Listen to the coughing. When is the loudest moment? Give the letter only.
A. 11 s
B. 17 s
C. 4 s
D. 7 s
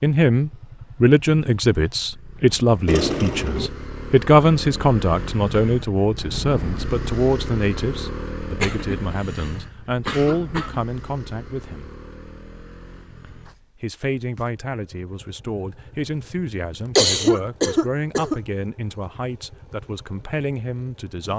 B.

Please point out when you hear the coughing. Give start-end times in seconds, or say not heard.
2.9-3.7, 8.6-10.8, 16.9-18.4.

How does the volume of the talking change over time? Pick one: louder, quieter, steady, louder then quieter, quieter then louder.
quieter.